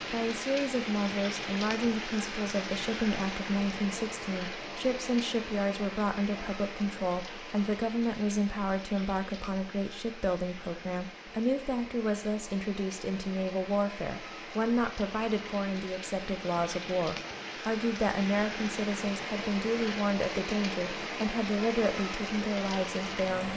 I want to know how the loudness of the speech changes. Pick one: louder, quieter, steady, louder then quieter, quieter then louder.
steady.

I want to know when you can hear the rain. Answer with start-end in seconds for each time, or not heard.
0.0-23.5.